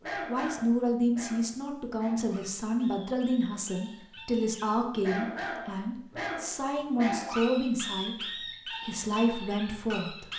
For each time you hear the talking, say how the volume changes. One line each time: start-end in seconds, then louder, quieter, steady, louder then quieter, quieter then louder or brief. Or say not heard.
0.2-10.3 steady.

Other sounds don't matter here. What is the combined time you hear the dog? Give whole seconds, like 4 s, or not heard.
10 s.